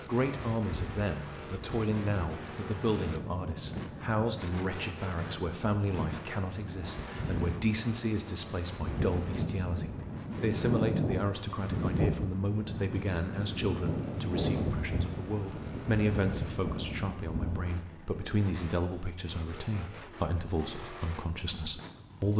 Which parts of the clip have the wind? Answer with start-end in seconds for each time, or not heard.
0.0-17.9.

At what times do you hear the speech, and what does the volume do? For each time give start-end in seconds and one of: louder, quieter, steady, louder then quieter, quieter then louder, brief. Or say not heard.
0.1-22.3 steady.